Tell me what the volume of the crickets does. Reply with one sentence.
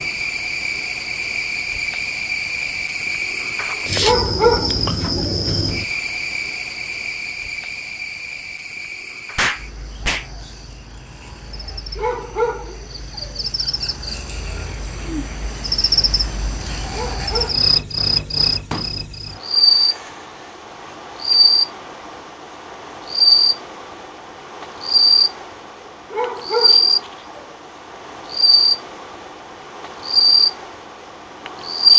The volume of the crickets goes down, then up.